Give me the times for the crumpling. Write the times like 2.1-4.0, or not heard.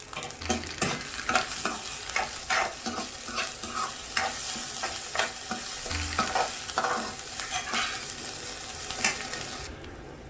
0.4-2.4, 5.9-6.5.